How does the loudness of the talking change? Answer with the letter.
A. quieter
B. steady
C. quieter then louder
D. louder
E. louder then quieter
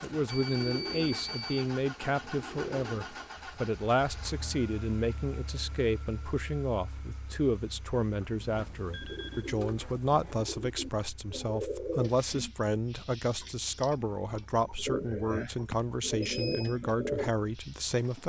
B.